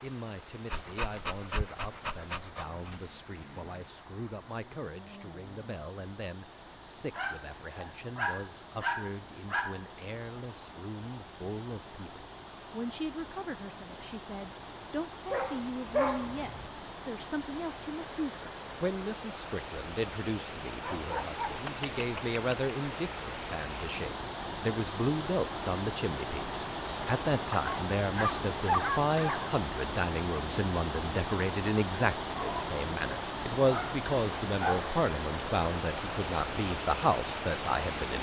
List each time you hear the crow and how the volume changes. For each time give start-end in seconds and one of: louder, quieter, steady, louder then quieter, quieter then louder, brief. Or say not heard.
not heard.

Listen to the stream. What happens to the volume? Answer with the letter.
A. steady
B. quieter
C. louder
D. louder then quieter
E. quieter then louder
C.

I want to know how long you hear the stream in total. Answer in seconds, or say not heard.
38 s.